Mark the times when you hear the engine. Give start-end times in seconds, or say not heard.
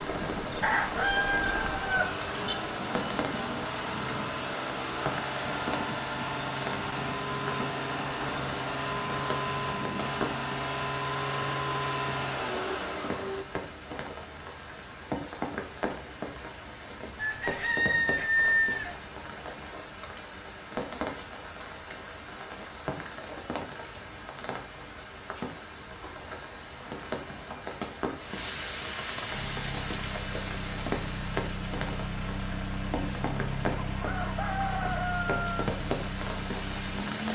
0.0-13.4, 29.3-37.3.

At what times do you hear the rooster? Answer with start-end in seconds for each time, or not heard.
0.6-2.5, 17.1-18.9, 34.0-35.6.